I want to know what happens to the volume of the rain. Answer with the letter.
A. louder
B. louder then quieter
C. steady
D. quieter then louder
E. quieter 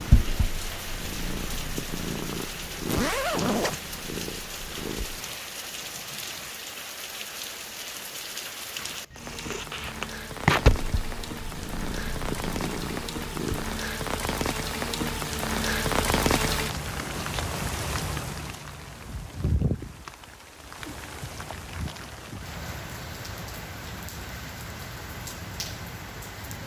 B.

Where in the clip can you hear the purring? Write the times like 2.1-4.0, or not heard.
0.0-6.5, 8.8-13.8.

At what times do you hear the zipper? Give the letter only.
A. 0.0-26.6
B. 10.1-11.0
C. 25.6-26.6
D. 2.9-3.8
D.